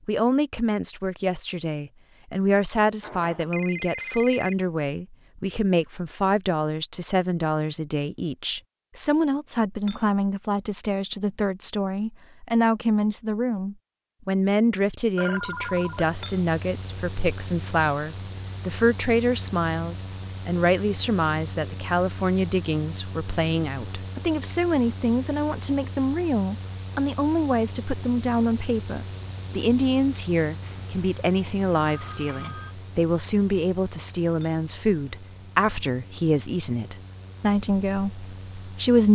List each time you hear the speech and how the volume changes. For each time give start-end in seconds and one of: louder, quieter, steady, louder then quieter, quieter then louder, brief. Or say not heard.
0.1-39.1 steady.